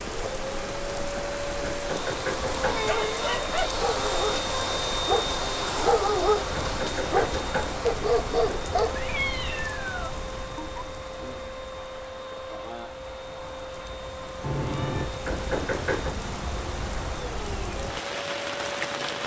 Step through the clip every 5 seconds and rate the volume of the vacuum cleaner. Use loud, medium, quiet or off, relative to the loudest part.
loud, loud, medium, medium.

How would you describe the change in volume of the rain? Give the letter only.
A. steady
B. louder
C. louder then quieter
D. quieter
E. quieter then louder
E.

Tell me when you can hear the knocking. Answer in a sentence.
You can hear the knocking from 1.6 to 2.9 s, from 6.5 to 8.7 s and from 15.2 to 16.2 s.